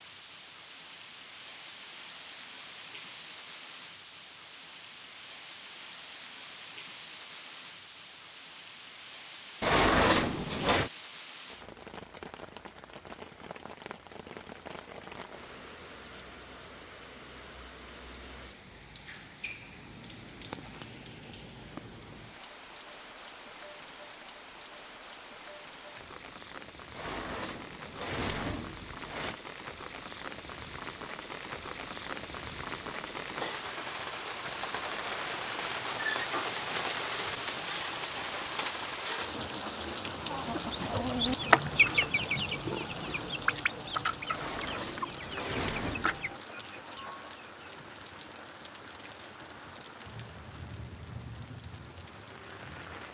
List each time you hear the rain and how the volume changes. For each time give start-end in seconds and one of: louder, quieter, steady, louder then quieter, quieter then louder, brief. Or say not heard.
0.0-53.0 louder then quieter.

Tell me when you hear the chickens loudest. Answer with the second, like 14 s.
42 s.